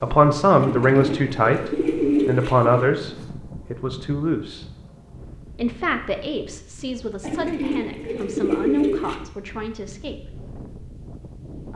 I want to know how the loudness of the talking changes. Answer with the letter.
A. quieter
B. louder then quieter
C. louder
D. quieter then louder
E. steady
A.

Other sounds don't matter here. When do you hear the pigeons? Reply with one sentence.
The pigeons can be heard from 0.6 to 2.9 s and from 7.2 to 9.2 s.